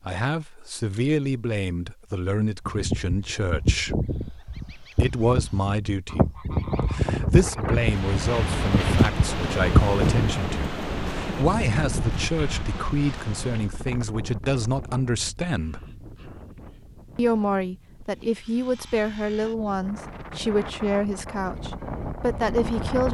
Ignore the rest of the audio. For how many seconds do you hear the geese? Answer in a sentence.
The geese can be heard for 8 seconds in total.